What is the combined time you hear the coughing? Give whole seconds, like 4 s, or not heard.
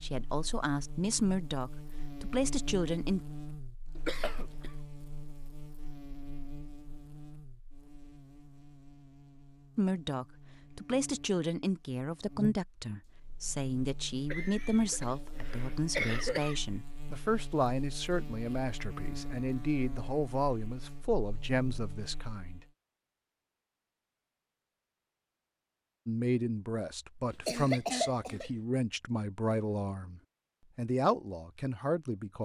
4 s.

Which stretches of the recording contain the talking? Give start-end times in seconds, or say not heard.
0.0-3.2, 9.8-22.6, 26.1-32.4.